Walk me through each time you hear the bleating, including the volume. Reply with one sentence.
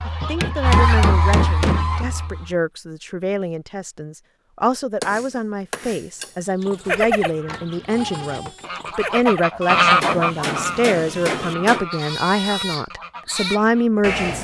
The bleating can be heard from 6.6 to 14.4 s, getting quieter then louder.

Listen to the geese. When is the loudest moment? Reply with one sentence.
The volume of the geese peaks at 10 seconds.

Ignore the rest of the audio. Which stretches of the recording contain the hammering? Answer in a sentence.
You can hear the hammering from 0.2 to 2.1 s, from 5.0 to 6.3 s and from 9.7 to 11.8 s.